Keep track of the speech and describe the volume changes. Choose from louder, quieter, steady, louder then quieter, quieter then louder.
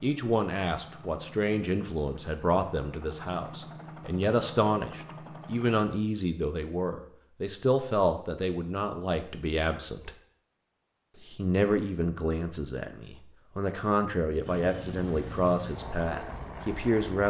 steady.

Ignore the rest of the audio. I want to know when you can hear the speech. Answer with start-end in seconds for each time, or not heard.
0.0-10.1, 11.3-17.2.